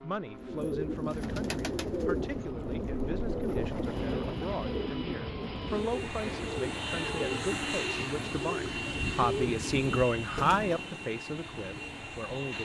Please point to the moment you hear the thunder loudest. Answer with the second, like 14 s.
4 s.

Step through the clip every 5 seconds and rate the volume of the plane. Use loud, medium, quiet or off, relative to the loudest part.
medium, loud, loud.